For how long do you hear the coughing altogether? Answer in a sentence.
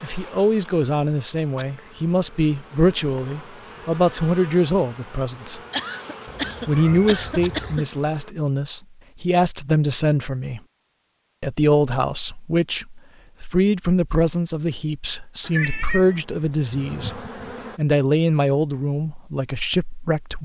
The coughing can be heard for 2 seconds in total.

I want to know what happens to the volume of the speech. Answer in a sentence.
The loudness of the speech stays about the same.